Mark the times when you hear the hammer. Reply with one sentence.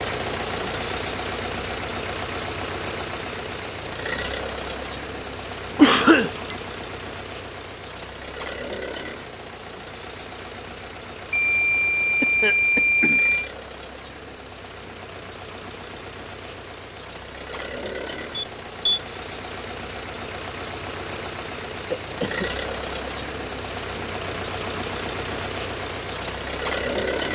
You can't hear the hammer here.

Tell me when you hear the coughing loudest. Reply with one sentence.
The volume of the coughing peaks at 6 seconds.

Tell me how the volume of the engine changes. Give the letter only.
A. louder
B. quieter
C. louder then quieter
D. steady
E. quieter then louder
E.